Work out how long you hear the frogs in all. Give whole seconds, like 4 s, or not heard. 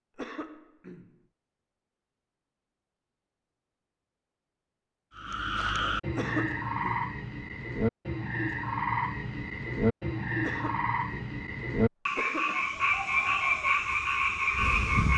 10 s.